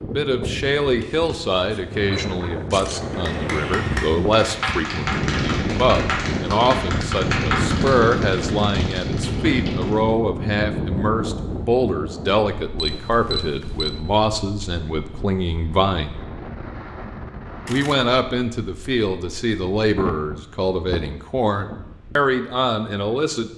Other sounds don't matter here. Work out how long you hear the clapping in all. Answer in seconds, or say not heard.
7 s.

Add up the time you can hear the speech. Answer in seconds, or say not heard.
22 s.